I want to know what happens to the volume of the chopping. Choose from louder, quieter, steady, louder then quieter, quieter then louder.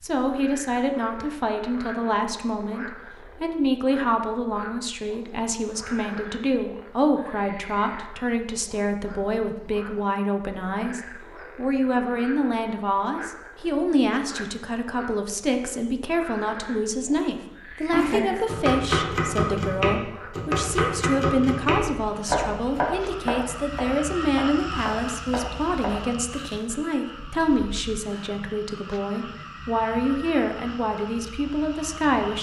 quieter.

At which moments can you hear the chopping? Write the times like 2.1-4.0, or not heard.
17.9-26.6.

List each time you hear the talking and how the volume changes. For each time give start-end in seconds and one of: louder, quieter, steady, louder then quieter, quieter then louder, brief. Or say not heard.
0.0-32.3 steady.